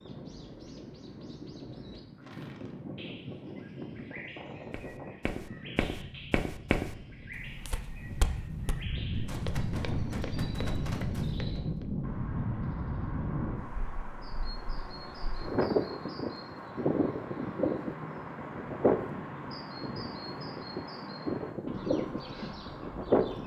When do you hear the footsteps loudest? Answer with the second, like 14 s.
7 s.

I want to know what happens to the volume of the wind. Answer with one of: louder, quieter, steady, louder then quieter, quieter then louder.
louder.